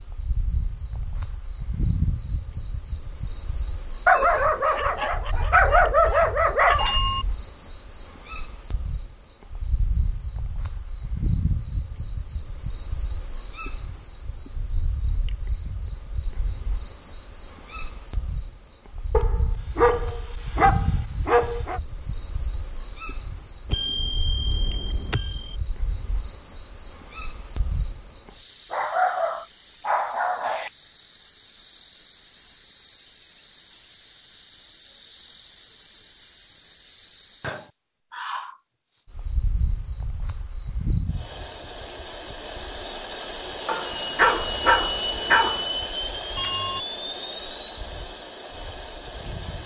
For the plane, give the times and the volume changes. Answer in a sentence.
The plane can be heard from 41.0 to 49.6 s, getting louder then quieter.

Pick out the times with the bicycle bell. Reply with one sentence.
You can hear the bicycle bell from 6.8 to 7.2 s, from 23.7 to 25.6 s and from 46.4 to 46.8 s.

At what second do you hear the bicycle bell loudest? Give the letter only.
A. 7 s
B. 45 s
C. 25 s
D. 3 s
A.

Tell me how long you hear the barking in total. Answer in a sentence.
You can hear the barking for 10 seconds altogether.